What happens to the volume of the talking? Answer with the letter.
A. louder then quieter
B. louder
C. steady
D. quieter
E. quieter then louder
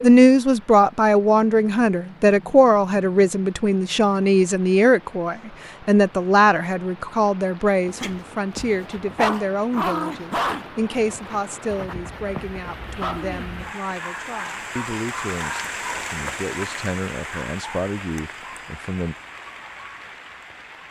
D.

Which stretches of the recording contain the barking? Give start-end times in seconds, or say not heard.
7.8-13.5.